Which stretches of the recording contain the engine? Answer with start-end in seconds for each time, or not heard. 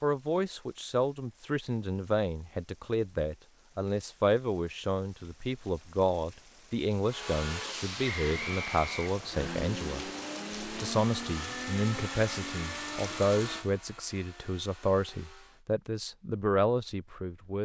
7.0-15.7.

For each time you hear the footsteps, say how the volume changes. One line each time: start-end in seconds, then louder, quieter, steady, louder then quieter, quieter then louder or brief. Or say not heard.
not heard.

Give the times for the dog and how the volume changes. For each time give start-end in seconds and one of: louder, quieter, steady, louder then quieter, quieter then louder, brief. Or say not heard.
not heard.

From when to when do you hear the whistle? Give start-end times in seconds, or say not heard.
8.0-9.6.